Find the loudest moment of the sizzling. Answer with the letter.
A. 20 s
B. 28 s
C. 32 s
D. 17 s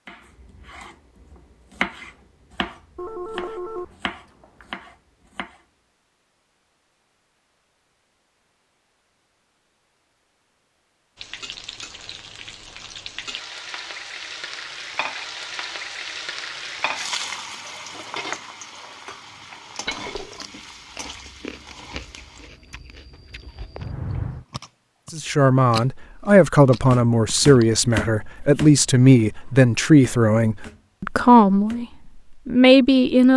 D.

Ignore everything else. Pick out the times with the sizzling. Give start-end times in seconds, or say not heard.
11.2-22.5.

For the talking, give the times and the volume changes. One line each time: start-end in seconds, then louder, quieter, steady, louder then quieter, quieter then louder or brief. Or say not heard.
25.1-31.9 steady
32.5-33.3 brief.